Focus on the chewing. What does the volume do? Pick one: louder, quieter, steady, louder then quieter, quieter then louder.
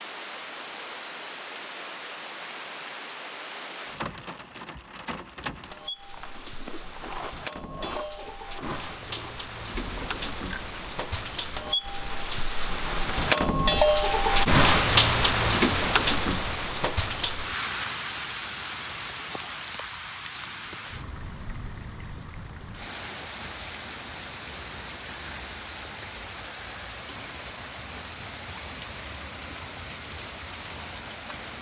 quieter.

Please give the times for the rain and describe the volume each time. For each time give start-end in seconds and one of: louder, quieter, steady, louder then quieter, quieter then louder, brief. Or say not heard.
0.0-31.5 louder then quieter.